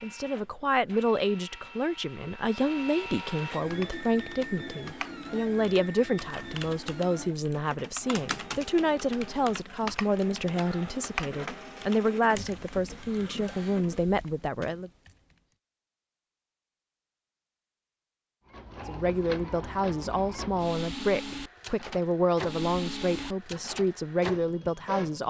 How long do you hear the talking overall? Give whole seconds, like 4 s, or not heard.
21 s.